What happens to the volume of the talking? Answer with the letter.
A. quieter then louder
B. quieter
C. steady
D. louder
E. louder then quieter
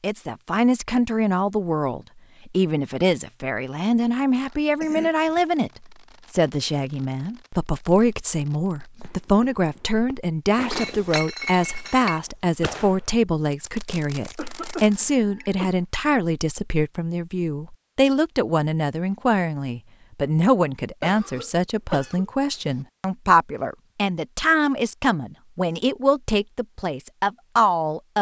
C.